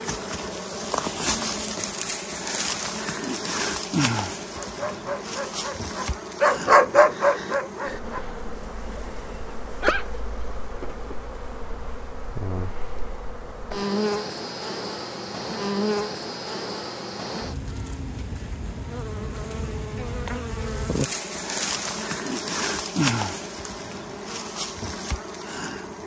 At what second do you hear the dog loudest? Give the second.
7 s.